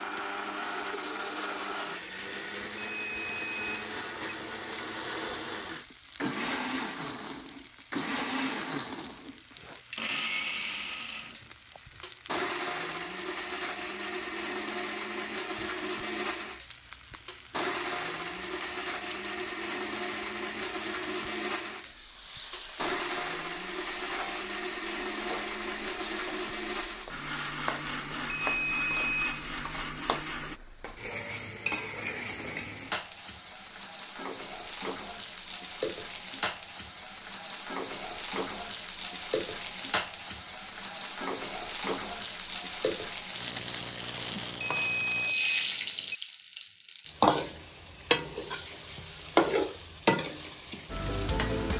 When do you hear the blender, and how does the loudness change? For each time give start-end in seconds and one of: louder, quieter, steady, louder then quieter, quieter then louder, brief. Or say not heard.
0.0-30.6 steady.